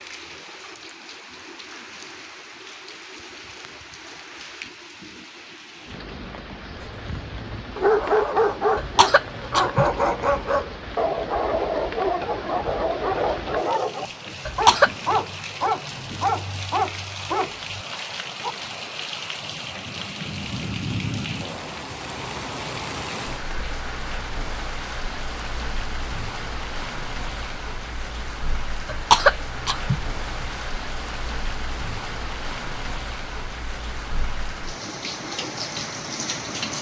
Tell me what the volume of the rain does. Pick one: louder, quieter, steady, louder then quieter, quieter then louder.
louder.